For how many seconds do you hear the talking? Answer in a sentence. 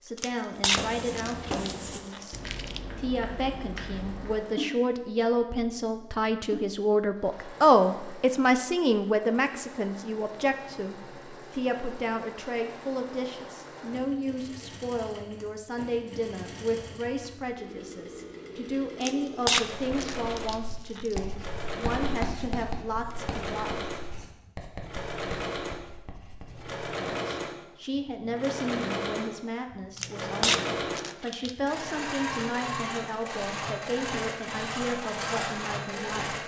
The talking can be heard for 33 seconds in total.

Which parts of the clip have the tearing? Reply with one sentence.
The tearing can be heard from 0.1 to 2.8 s, from 19.0 to 21.2 s and from 29.9 to 31.5 s.